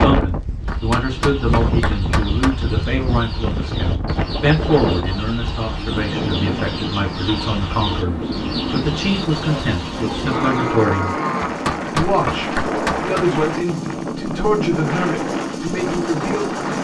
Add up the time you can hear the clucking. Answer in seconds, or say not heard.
10 s.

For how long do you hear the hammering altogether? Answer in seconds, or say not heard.
4 s.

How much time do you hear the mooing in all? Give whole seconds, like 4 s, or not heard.
2 s.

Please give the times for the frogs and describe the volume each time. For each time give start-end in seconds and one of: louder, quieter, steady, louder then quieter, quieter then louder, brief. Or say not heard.
not heard.